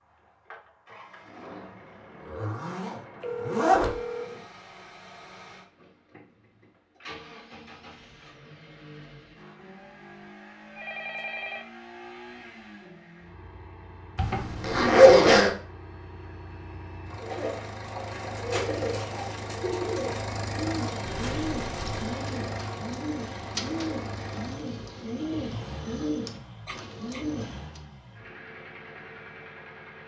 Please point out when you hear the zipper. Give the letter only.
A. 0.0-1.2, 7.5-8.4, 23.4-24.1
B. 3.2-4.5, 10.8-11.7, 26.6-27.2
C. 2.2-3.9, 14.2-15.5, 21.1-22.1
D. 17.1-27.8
C.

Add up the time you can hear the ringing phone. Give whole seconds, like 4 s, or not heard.
3 s.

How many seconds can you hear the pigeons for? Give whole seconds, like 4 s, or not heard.
11 s.